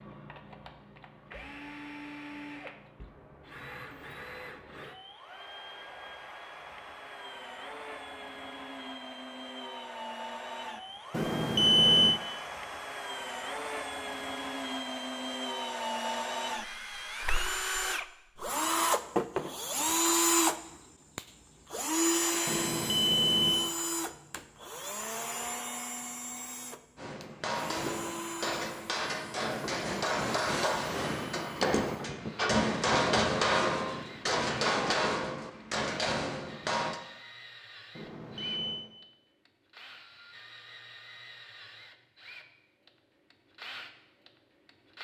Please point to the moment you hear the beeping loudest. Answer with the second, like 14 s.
12 s.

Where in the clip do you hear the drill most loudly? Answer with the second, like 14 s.
20 s.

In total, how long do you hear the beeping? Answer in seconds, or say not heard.
3 s.